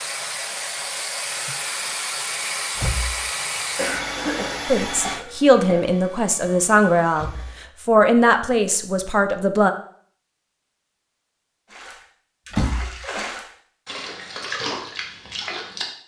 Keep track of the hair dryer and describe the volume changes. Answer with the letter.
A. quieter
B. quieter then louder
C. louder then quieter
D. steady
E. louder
A.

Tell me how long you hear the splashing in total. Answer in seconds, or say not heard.
4 s.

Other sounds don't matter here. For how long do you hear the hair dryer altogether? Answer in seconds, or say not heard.
8 s.